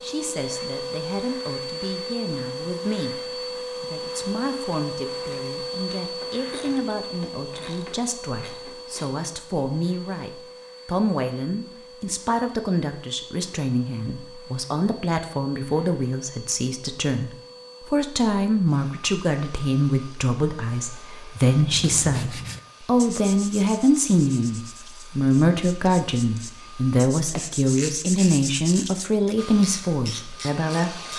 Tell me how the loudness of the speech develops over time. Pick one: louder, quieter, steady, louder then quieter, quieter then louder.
louder.